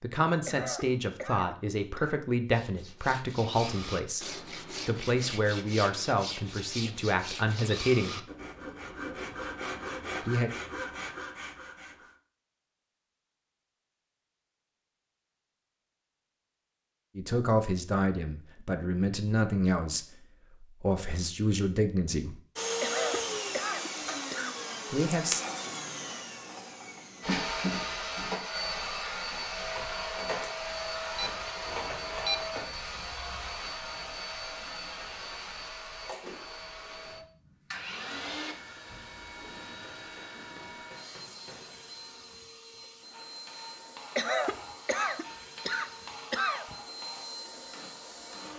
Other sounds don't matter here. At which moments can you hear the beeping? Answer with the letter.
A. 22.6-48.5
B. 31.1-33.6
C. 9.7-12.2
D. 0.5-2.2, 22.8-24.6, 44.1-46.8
B.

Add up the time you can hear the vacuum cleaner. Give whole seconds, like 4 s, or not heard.
26 s.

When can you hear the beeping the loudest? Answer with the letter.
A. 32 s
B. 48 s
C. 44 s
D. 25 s
A.